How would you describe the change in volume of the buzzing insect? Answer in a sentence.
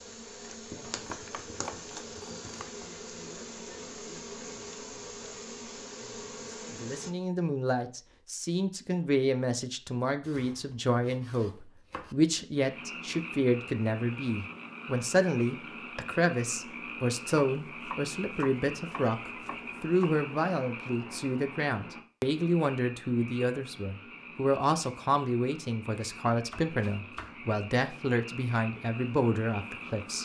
The volume of the buzzing insect stays about the same.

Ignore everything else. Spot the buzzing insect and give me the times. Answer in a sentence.
The buzzing insect can be heard from 0.0 to 7.2 s.